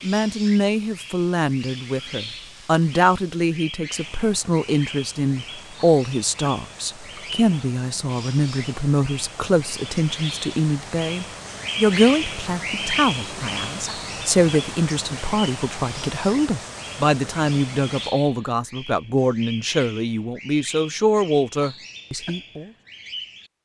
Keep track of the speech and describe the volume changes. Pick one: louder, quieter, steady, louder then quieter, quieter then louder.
steady.